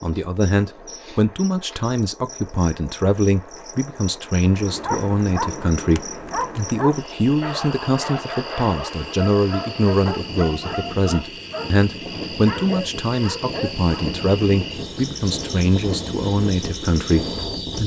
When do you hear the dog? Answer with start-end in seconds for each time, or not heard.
4.4-15.2.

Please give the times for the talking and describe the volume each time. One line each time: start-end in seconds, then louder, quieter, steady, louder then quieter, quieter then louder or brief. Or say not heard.
0.0-17.8 steady.